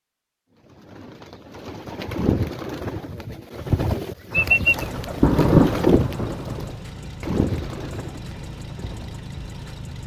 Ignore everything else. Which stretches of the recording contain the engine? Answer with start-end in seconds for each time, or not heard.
4.6-10.0.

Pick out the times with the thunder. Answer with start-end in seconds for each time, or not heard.
4.3-6.8.